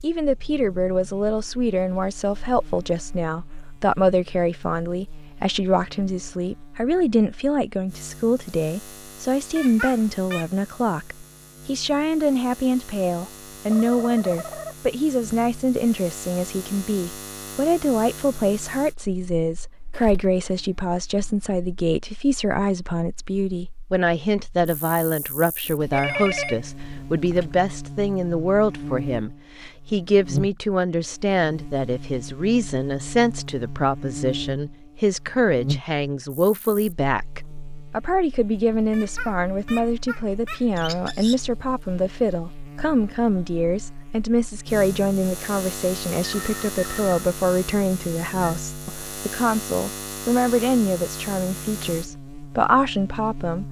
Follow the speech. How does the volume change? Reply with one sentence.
The volume of the speech stays about the same.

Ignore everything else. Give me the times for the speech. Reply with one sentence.
The speech can be heard from 0.0 to 53.6 s.